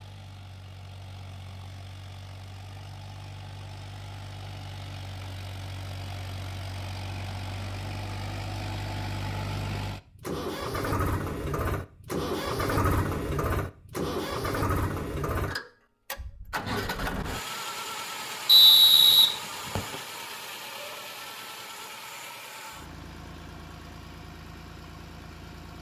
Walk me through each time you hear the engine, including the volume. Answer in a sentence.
You can hear the engine from 0.0 to 25.7 s, getting louder then quieter.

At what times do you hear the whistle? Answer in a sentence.
You can hear the whistle from 18.4 to 19.9 s.